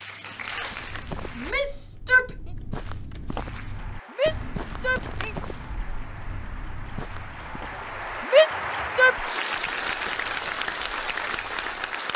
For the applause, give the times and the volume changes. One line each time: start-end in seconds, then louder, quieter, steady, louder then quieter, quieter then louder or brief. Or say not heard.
0.0-1.6 brief
3.4-12.1 louder.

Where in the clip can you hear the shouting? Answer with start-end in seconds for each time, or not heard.
1.4-2.4, 4.1-5.3, 8.3-9.2.